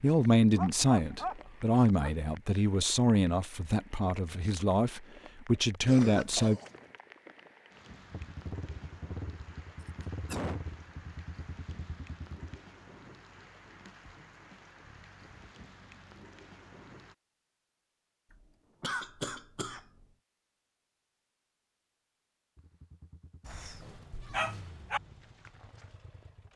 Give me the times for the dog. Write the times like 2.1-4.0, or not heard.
0.6-2.1, 23.4-25.0.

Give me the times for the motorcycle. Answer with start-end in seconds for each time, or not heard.
8.1-12.6, 22.6-26.5.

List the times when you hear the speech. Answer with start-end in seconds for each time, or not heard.
0.0-6.6.